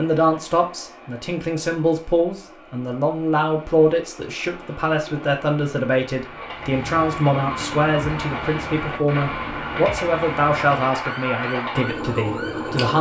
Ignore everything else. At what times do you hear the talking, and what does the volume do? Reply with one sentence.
The talking can be heard from 0.0 to 12.9 s, at a steady volume.